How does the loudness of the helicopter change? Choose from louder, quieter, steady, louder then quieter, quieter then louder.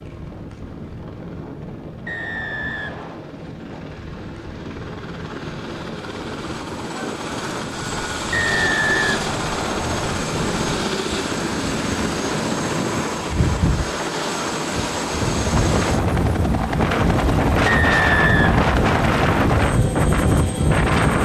louder.